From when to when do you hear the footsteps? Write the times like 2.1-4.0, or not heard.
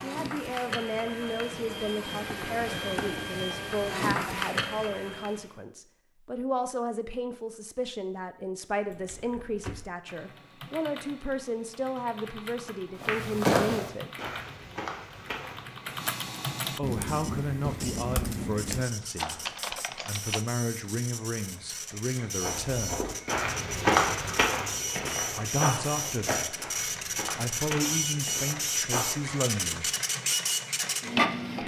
13.0-16.1, 22.4-29.4.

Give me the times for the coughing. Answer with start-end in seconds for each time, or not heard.
not heard.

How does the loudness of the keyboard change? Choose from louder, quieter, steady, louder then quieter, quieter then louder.
louder.